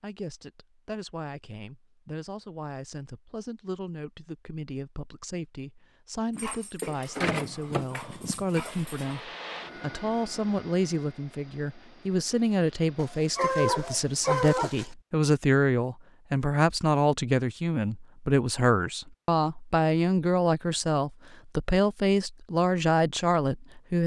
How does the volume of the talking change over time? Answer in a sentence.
The volume of the talking goes up.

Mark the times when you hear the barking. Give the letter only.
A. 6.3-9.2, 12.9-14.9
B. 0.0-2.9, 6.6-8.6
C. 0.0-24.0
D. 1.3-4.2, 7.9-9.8
A.